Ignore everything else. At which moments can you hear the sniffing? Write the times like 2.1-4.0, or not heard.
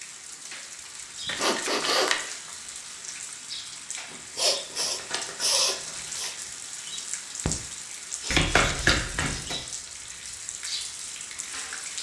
1.4-2.1, 4.3-6.3, 8.2-9.6.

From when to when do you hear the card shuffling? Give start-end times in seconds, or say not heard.
1.2-2.2, 4.0-6.0, 8.3-9.6.